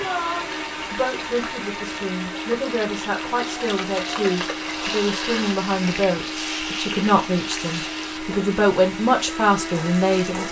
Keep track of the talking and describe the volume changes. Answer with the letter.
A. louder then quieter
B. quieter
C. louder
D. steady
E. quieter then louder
C.